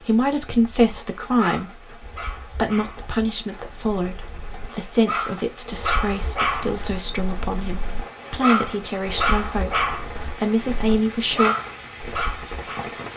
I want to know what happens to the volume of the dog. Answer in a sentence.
The loudness of the dog goes up.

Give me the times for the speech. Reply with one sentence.
The speech can be heard from 0.0 to 11.6 s.